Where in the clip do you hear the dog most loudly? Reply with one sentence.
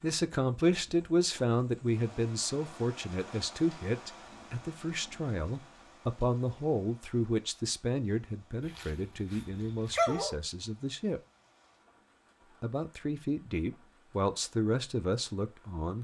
The loudest moment of the dog is at 10 seconds.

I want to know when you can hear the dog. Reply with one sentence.
You can hear the dog from 8.7 to 10.4 s.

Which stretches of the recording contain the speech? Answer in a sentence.
You can hear the speech from 0.0 to 11.2 s and from 12.6 to 15.9 s.